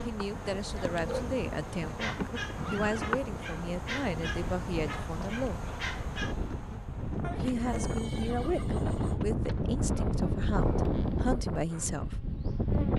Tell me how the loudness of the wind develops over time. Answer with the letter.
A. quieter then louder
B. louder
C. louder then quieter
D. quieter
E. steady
B.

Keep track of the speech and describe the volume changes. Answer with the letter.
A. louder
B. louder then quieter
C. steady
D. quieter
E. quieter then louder
C.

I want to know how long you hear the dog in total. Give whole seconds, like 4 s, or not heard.
6 s.